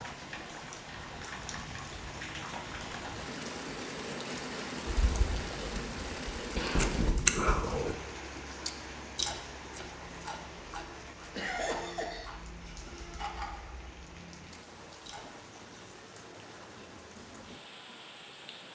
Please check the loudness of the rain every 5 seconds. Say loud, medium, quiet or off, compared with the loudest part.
loud, loud, medium, medium.